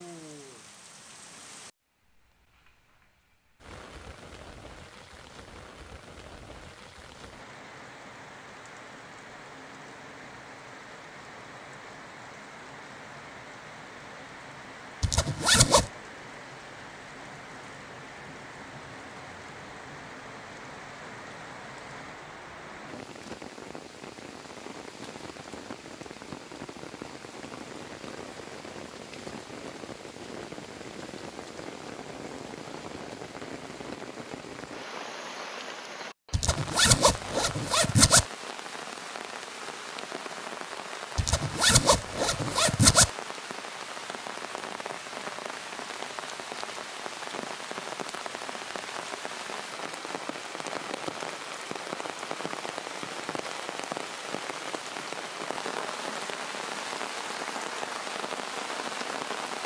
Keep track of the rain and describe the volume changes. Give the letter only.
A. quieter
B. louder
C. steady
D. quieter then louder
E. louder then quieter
B.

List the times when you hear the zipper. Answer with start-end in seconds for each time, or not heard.
15.0-15.9, 36.3-38.2, 41.1-43.1.